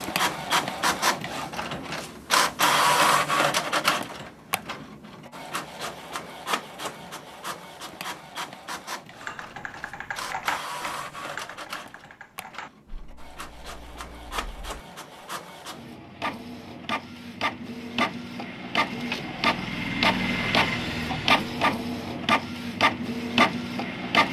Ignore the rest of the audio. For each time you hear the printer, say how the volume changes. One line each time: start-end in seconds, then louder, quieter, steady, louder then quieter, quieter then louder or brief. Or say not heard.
0.0-24.2 quieter then louder.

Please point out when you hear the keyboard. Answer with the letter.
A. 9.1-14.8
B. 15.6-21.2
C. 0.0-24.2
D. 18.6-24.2
A.